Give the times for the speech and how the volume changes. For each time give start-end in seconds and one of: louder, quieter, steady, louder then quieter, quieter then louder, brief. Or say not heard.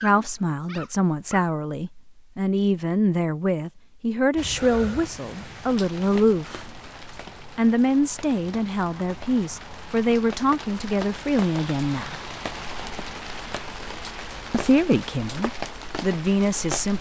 0.0-6.8 steady
7.5-12.2 steady
14.5-16.9 brief.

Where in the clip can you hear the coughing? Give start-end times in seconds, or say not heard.
not heard.